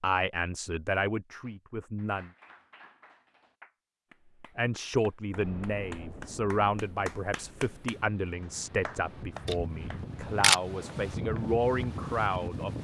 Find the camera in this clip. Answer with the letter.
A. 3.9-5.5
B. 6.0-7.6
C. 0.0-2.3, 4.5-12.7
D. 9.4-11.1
D.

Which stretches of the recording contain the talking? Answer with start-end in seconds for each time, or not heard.
0.0-2.3, 4.5-12.7.